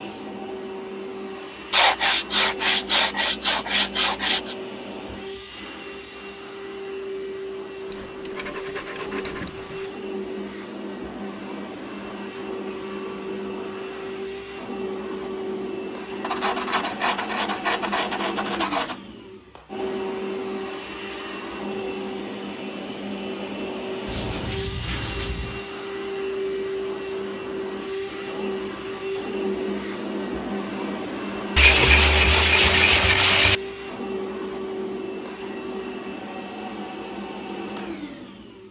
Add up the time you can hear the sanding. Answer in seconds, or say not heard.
11 s.